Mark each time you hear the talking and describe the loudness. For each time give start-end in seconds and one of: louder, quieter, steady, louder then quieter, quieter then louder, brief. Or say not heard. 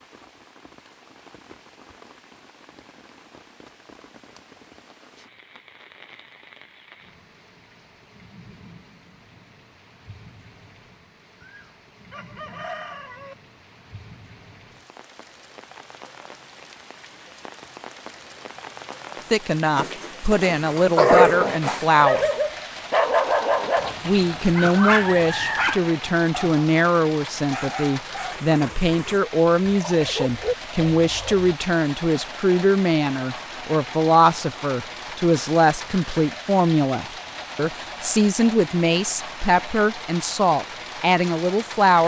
19.3-22.2 brief
24.1-42.0 steady.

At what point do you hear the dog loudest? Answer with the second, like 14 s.
21 s.